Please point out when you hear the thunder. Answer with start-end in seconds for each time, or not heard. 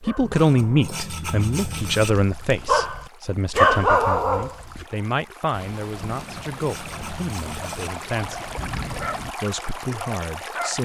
5.5-9.3.